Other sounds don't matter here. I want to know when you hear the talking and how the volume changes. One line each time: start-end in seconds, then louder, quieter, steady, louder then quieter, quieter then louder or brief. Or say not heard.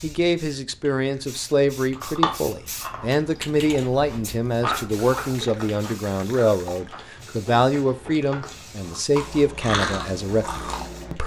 0.0-11.2 steady.